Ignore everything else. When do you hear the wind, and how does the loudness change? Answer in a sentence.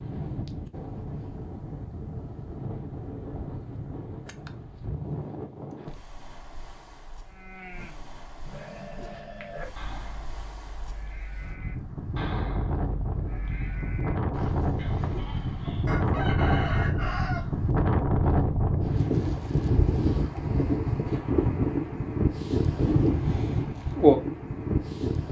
The wind can be heard from 0.0 to 25.2 s, getting quieter then louder.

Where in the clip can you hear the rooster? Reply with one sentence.
You can hear the rooster from 15.8 to 17.4 s.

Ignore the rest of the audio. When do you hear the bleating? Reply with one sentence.
You can hear the bleating from 7.2 to 15.9 s.